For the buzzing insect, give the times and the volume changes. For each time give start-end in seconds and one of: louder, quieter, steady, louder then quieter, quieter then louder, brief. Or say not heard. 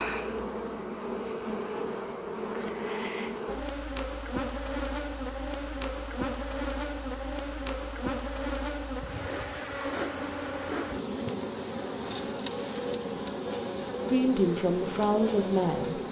0.0-16.0 steady.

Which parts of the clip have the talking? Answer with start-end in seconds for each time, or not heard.
14.1-16.0.